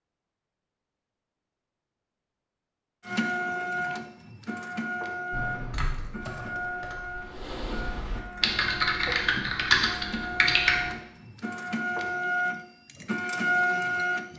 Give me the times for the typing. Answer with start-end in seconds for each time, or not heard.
5.3-10.9.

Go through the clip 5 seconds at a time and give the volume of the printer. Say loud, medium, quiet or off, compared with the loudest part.
loud, medium, loud.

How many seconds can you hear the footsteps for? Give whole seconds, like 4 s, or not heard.
not heard.